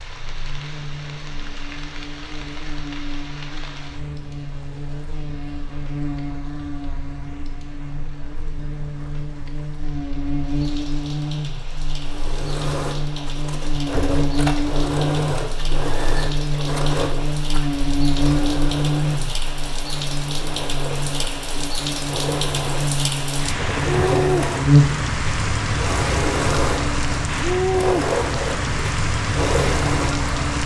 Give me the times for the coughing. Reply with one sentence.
The coughing can't be heard in this clip.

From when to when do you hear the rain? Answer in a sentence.
The rain can be heard from 0.0 to 30.6 s.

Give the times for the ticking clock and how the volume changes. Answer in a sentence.
The ticking clock can't be heard in this clip.